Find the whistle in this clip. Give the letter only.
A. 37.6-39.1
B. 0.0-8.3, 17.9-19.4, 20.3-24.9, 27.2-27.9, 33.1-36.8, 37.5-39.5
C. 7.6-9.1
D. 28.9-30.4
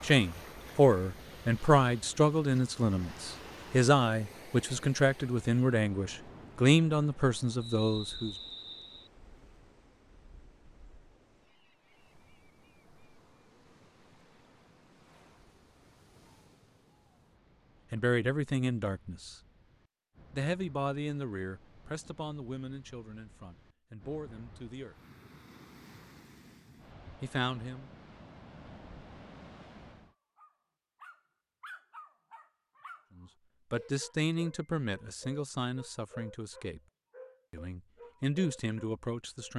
C.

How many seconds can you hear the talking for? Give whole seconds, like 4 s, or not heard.
21 s.